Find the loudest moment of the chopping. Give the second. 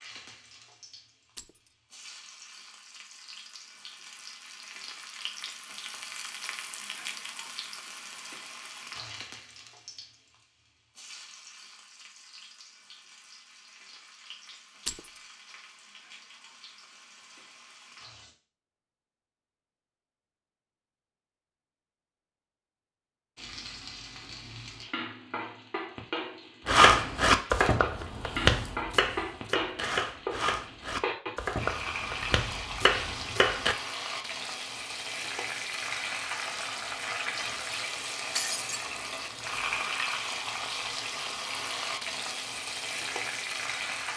27 s.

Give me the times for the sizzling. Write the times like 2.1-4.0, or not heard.
0.0-18.4, 23.4-44.1.